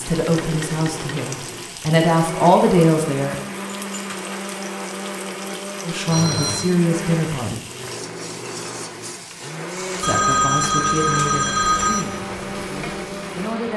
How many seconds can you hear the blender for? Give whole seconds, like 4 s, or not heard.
14 s.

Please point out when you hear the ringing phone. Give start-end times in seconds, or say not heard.
0.2-1.1, 6.1-6.8, 10.0-12.1.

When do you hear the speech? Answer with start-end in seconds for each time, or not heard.
0.0-3.4, 5.8-7.6, 10.0-13.7.